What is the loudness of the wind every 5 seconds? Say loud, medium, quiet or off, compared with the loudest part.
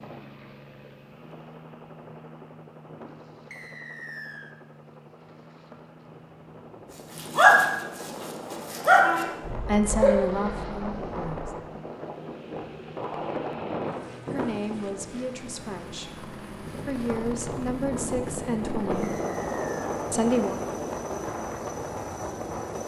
quiet, medium, loud, loud, loud.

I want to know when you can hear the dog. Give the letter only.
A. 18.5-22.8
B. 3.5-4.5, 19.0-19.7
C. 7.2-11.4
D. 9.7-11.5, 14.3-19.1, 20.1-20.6
C.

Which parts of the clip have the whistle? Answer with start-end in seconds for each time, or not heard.
3.5-4.5, 19.0-19.7.